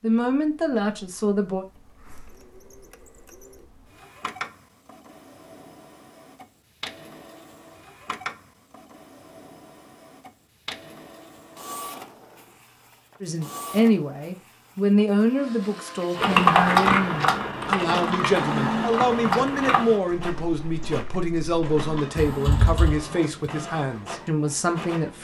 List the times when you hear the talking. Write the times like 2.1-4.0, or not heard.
0.0-1.6, 13.2-25.1.